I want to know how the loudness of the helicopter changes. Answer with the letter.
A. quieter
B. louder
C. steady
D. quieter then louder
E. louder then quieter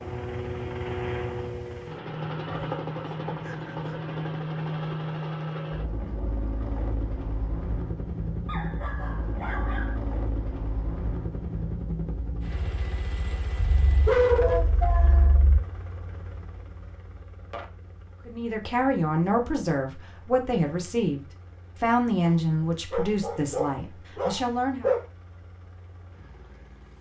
A.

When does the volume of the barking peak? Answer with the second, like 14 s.
14 s.